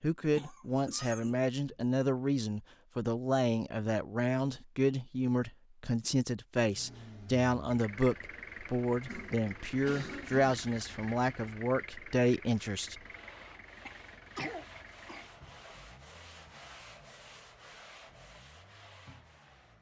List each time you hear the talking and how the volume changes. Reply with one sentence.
The talking can be heard from 0.0 to 12.9 s, at a steady volume.